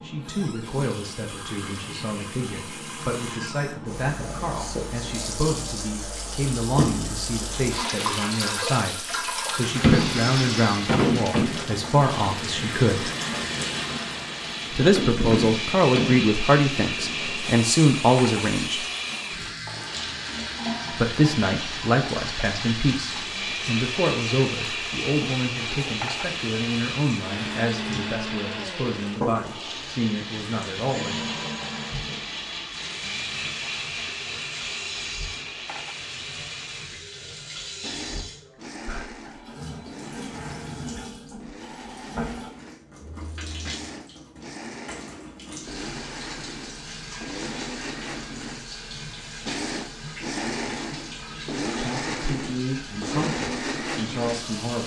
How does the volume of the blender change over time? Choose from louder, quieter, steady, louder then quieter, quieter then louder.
quieter then louder.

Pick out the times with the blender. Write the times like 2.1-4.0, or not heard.
7.5-54.8.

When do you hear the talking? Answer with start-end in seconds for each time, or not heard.
0.0-13.1, 14.7-18.9, 20.9-31.3, 51.8-54.8.